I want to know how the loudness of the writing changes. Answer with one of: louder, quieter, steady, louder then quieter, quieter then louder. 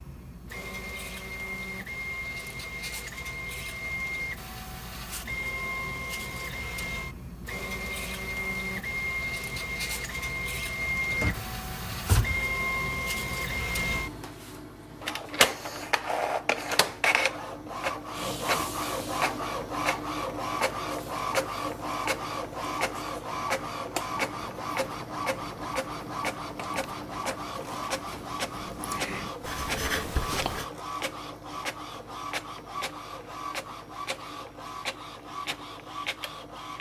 louder.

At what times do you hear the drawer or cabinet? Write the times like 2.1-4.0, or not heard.
11.1-12.4.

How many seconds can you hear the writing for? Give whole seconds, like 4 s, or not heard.
7 s.